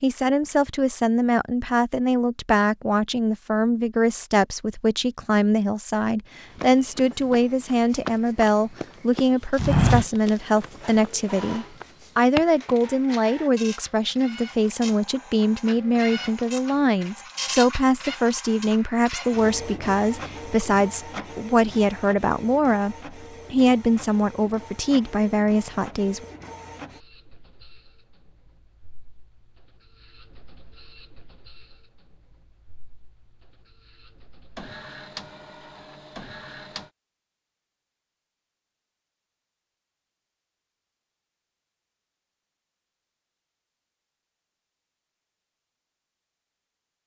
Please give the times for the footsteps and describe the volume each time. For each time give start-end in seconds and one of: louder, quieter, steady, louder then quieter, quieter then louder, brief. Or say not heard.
6.5-12.8 louder then quieter.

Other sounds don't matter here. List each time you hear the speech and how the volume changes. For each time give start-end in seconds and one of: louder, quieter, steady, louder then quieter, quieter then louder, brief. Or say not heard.
0.0-26.2 steady.